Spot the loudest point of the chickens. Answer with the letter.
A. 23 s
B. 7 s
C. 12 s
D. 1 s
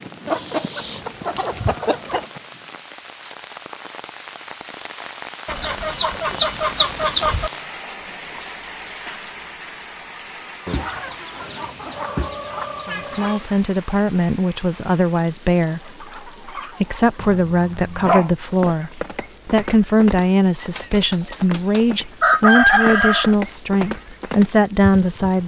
A.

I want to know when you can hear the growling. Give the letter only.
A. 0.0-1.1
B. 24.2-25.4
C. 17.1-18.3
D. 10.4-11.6
C.